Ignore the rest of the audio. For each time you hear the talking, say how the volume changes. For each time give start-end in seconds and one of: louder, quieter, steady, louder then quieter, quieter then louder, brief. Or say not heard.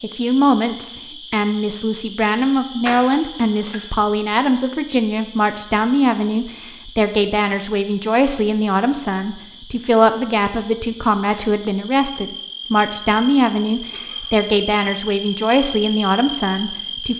0.0-17.1 steady.